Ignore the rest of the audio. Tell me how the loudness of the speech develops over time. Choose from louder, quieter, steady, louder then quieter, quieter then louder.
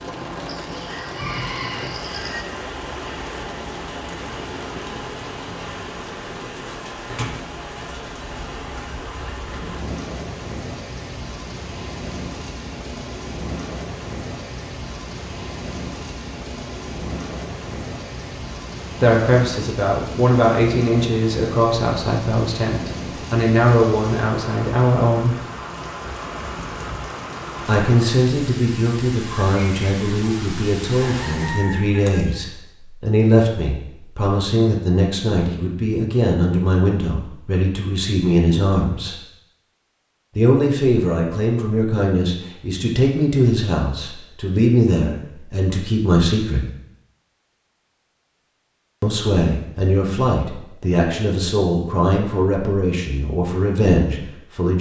steady.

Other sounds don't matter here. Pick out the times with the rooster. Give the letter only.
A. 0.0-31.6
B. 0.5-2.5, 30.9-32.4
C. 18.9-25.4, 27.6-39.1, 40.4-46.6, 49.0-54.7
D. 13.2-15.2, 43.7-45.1
B.